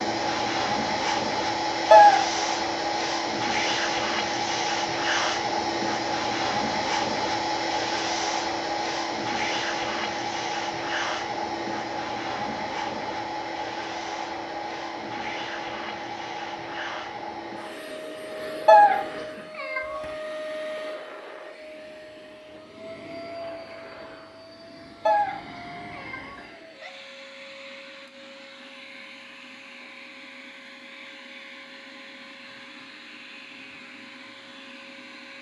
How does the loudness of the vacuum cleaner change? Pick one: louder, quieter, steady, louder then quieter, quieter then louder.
quieter.